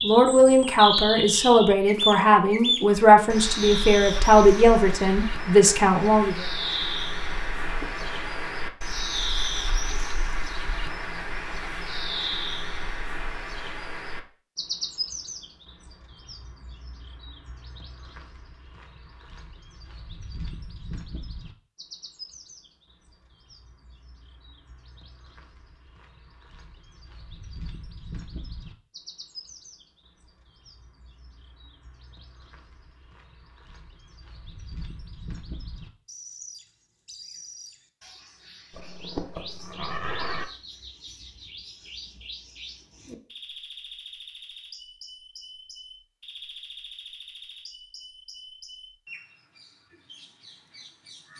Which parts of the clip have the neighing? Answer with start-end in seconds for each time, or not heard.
7.6-8.2, 38.7-40.5.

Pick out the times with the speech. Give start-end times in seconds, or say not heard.
0.0-6.5.